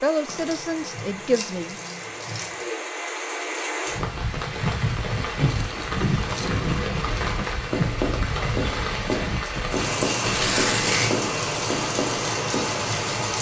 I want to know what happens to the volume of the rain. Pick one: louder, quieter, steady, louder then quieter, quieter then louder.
louder.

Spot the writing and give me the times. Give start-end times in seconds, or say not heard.
6.0-12.7.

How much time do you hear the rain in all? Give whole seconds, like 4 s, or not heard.
13 s.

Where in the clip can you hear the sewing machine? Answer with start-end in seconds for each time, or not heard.
not heard.